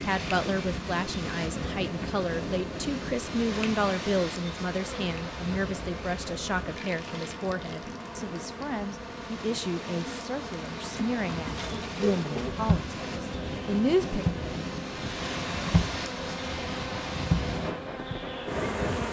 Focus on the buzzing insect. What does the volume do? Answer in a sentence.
The loudness of the buzzing insect goes up.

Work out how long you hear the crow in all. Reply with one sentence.
The crow can't be heard in this clip.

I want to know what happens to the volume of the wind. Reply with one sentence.
The volume of the wind goes down, then up.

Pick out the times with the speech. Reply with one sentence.
You can hear the speech from 0.0 to 14.2 s.